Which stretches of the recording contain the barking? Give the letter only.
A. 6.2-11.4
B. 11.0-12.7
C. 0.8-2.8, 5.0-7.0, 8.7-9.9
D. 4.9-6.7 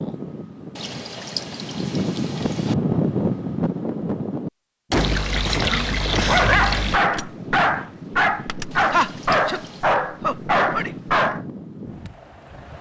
A.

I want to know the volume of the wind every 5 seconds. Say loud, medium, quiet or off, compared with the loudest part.
loud, medium, medium.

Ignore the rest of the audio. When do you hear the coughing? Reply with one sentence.
The coughing can be heard from 4.9 to 6.7 s.